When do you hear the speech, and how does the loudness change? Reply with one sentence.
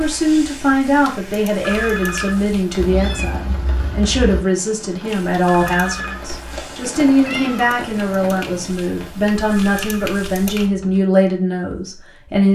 You can hear the speech from 0.0 to 12.5 s, at a steady volume.